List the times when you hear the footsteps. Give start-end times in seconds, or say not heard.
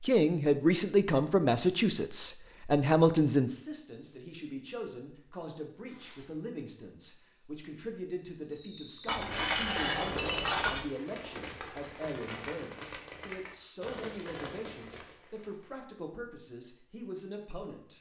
not heard.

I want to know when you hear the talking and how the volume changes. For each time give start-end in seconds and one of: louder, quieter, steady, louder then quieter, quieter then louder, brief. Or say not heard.
0.0-17.9 quieter.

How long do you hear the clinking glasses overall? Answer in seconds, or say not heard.
2 s.